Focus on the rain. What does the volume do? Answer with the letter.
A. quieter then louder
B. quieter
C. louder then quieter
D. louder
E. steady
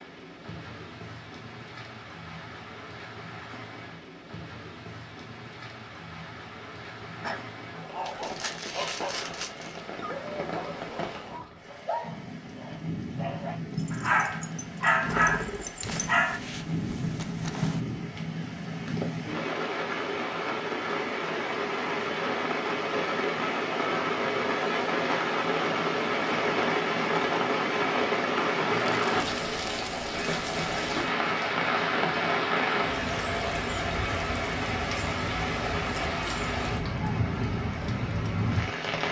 D.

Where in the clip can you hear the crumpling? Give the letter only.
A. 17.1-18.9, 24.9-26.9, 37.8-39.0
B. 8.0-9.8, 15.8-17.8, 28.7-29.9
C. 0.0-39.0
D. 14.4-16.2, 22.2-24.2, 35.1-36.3
B.